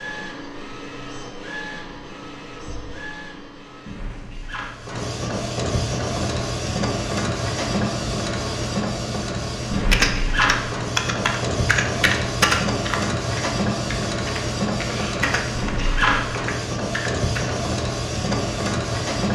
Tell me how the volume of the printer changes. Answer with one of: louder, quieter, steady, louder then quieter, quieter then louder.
louder.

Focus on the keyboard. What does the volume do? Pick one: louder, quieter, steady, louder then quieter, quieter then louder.
quieter.